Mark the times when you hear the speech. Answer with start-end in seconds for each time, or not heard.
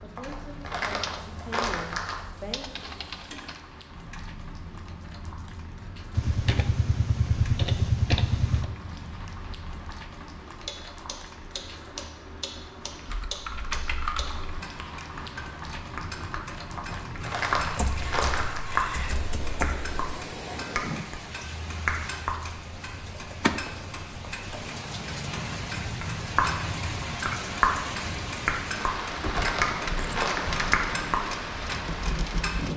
0.0-3.0.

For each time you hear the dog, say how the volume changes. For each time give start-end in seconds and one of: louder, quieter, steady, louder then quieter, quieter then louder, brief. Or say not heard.
not heard.